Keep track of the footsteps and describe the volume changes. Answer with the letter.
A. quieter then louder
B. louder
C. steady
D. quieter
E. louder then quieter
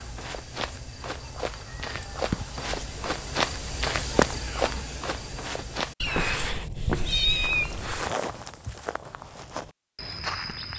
E.